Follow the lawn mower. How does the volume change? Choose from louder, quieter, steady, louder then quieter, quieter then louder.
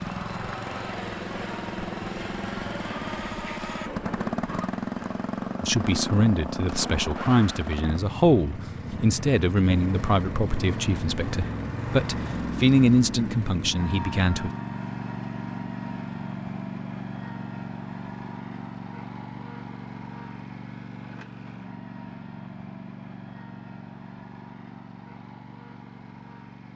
quieter.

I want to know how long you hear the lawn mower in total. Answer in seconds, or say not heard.
27 s.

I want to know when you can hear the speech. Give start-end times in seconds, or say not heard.
5.6-14.5.